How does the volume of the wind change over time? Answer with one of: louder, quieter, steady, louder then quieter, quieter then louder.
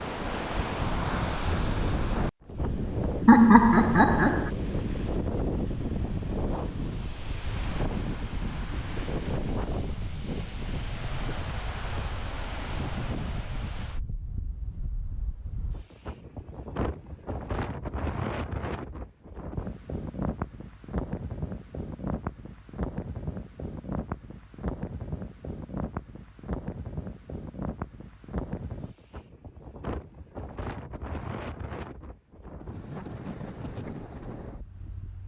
quieter.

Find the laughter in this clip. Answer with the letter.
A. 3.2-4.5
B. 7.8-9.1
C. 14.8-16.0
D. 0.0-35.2
A.